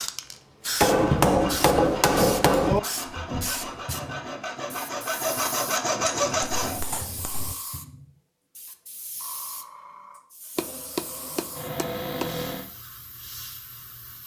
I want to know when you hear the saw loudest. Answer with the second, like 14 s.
6 s.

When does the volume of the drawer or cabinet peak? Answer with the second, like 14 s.
12 s.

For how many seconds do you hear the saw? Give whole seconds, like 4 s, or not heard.
6 s.